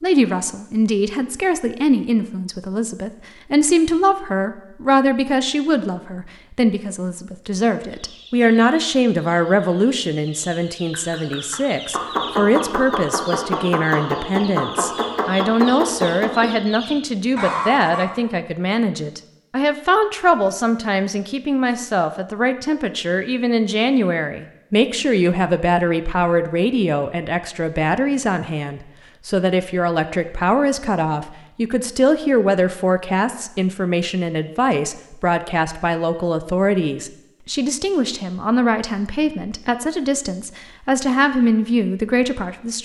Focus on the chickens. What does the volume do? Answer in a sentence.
The loudness of the chickens goes up.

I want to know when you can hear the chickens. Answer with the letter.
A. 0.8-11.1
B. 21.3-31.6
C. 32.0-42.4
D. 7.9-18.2
D.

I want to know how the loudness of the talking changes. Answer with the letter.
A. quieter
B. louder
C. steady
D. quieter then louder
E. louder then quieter
C.